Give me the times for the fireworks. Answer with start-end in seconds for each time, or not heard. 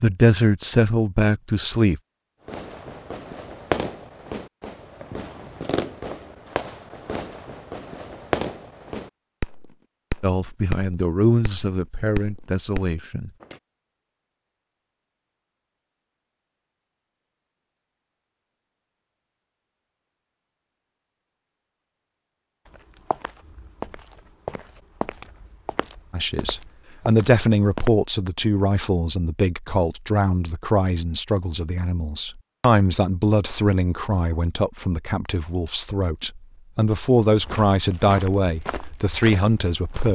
2.5-13.6.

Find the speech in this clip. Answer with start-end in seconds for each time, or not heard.
0.0-2.0, 10.2-13.3, 26.1-40.1.